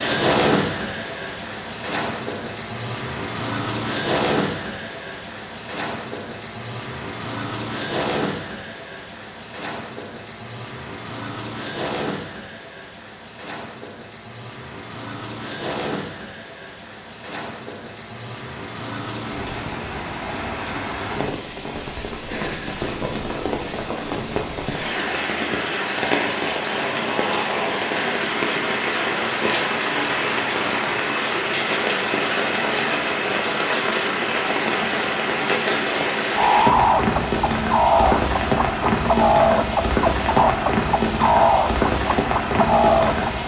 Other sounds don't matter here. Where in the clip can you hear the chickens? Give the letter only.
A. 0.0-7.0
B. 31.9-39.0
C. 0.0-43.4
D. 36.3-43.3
D.